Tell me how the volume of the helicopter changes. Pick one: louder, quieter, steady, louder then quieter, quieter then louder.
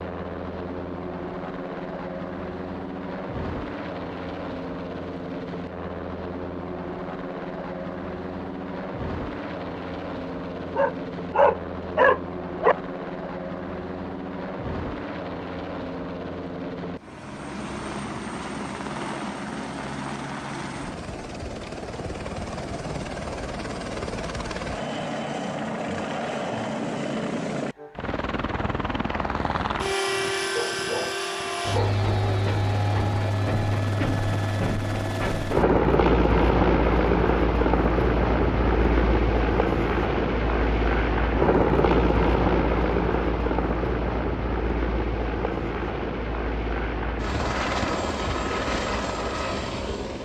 louder.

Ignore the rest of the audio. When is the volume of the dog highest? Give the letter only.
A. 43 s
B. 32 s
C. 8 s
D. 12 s
D.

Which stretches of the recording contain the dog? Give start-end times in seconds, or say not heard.
10.8-12.8, 30.6-32.0.